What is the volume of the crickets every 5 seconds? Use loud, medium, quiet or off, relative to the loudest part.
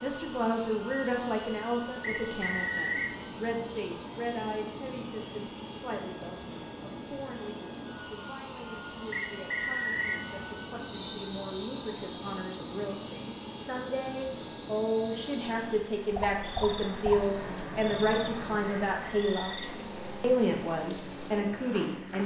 off, off, medium, loud, loud.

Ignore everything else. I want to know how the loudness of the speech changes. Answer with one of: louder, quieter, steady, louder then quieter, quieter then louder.
quieter then louder.